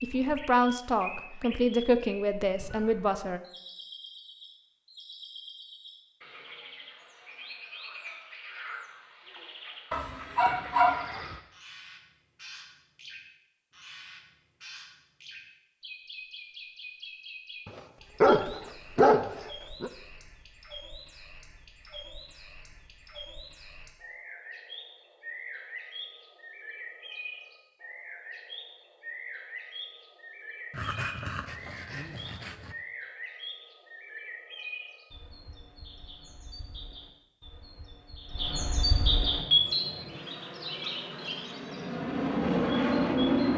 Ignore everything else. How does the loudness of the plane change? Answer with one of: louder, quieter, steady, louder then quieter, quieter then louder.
louder.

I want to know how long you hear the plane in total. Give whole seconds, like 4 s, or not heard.
4 s.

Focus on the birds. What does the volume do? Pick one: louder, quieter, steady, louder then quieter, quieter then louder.
louder.